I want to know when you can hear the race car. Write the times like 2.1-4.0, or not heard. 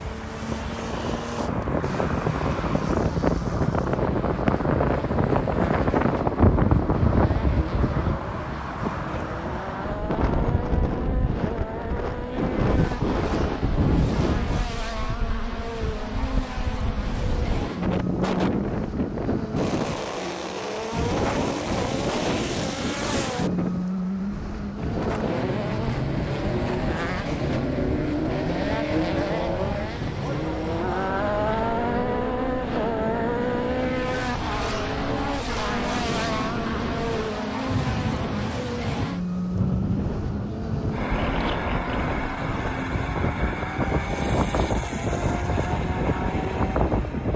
0.0-47.3.